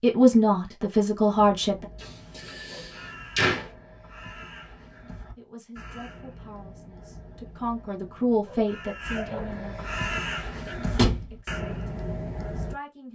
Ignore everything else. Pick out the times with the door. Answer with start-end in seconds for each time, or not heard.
2.0-3.7, 10.9-11.3.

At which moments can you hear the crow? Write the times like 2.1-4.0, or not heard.
1.3-12.8.